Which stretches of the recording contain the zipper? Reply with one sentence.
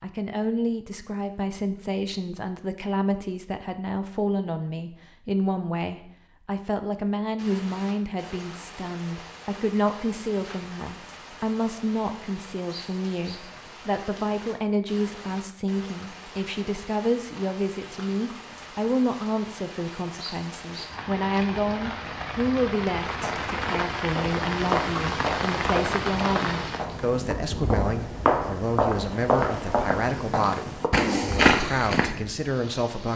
The zipper can't be heard in this clip.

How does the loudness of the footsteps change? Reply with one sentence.
The volume of the footsteps goes up.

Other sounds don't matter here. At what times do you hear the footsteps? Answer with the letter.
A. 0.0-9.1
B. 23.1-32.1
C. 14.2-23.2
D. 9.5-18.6
B.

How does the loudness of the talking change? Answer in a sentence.
The loudness of the talking stays about the same.